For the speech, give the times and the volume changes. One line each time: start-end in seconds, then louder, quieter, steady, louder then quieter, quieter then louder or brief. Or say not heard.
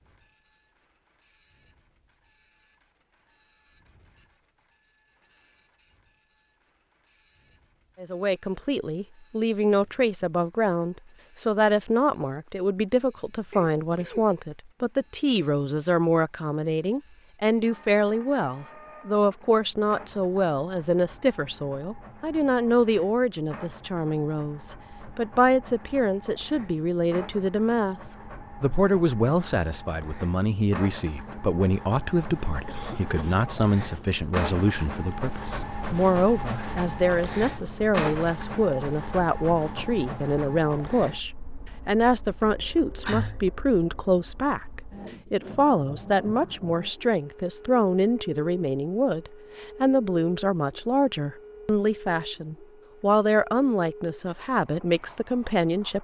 8.0-28.0 steady
28.6-55.9 steady.